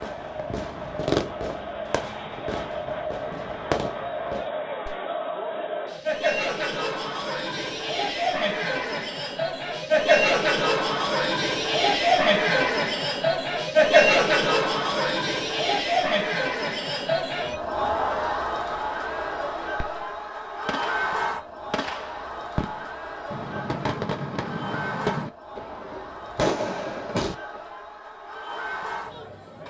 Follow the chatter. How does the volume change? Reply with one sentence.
The volume of the chatter goes up, then down.